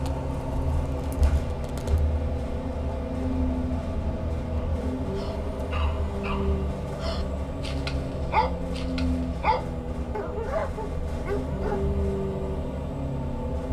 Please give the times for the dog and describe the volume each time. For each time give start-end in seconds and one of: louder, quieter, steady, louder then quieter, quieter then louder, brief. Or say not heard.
4.5-11.8 louder.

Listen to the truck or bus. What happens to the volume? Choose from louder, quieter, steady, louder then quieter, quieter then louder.
steady.